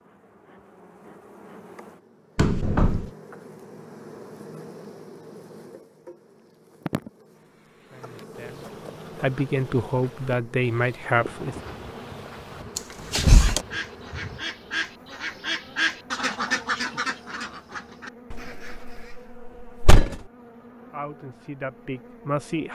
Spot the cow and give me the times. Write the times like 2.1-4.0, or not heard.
not heard.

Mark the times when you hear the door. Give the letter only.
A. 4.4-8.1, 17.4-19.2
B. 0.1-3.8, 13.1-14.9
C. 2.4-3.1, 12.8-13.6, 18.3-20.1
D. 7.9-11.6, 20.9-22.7
C.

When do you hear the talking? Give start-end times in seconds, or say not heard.
7.9-11.6, 20.9-22.7.